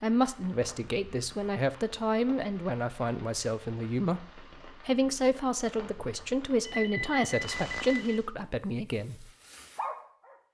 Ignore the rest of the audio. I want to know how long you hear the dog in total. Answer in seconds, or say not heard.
2 s.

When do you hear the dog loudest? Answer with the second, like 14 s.
10 s.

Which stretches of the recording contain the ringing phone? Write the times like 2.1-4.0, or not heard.
6.7-8.2.